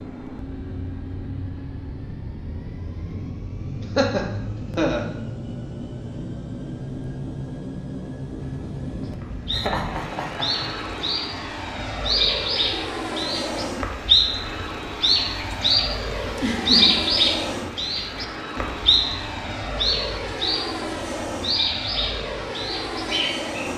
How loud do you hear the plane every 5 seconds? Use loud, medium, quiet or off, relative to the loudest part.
medium, loud, loud, loud, loud.